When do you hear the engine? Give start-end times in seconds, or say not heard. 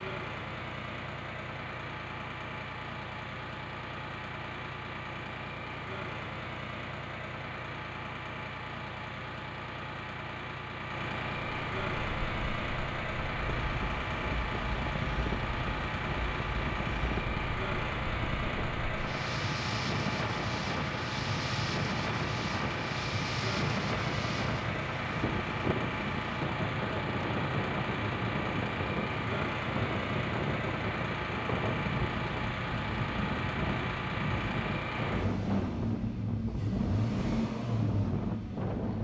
0.0-39.0.